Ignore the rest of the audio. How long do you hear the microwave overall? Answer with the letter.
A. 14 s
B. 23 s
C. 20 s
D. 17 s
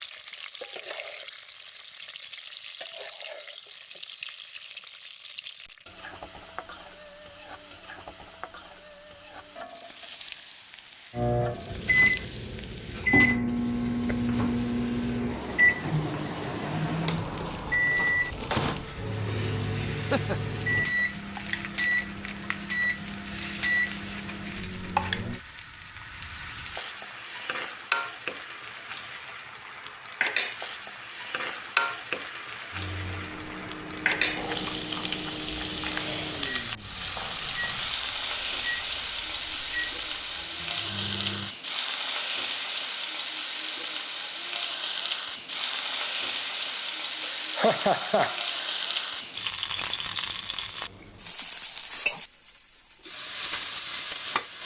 B.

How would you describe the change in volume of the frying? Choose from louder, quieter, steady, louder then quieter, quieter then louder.
louder.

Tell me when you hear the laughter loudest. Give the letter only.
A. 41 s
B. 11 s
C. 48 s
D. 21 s
C.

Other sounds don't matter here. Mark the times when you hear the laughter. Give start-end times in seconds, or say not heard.
19.9-20.6, 47.2-48.6.